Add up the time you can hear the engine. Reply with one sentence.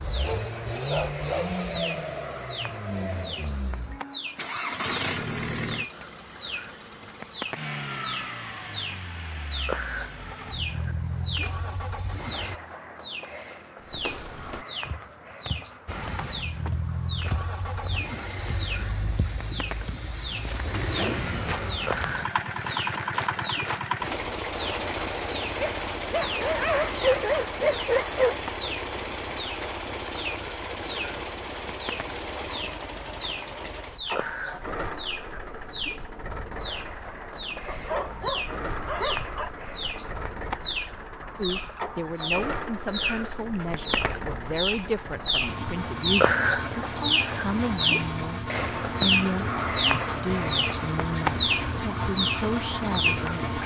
The engine can be heard for 50 seconds in total.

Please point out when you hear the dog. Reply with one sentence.
The dog can be heard from 0.2 to 1.6 s, from 25.6 to 28.4 s and from 37.6 to 39.5 s.